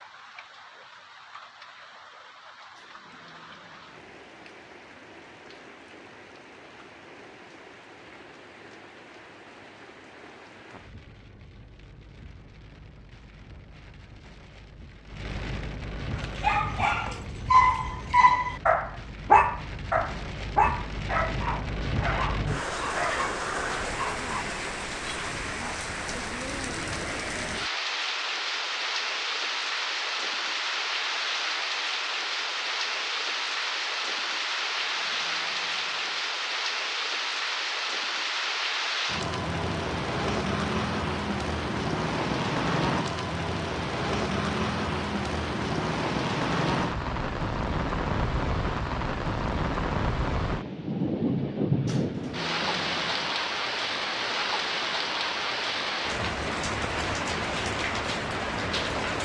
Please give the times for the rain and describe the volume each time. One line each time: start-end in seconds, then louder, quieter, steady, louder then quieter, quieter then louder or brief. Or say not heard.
0.0-59.2 louder.